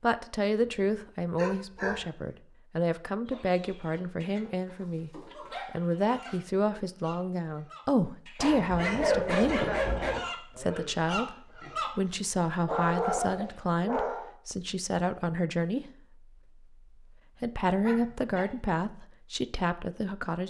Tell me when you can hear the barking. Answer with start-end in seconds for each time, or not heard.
0.7-2.0, 4.4-6.4, 8.3-10.2, 12.6-14.3, 17.8-18.5.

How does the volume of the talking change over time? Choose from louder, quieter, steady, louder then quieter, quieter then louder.
steady.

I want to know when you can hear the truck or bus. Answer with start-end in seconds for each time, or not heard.
not heard.